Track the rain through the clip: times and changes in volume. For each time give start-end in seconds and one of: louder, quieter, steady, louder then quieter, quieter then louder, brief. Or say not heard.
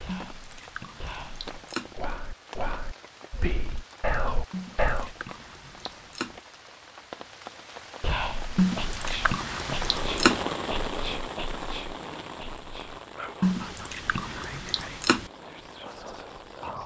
0.0-16.8 louder then quieter.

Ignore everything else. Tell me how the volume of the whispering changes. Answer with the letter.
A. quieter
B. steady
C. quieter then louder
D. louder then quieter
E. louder
D.